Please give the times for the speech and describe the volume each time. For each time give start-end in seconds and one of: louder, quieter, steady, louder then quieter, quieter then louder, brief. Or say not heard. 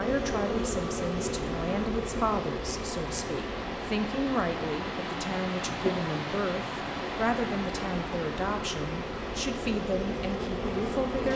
0.0-11.3 steady.